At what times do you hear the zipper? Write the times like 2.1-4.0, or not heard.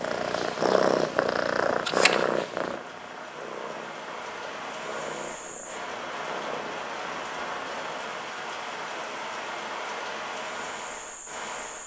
not heard.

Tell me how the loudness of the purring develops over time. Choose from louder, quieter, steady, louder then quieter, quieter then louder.
quieter.